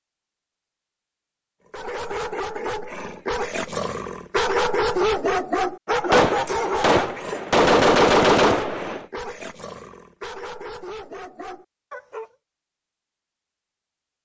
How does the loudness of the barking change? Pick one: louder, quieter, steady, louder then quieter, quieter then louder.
louder then quieter.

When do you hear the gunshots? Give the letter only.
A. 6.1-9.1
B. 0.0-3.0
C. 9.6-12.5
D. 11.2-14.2
A.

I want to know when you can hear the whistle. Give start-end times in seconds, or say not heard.
not heard.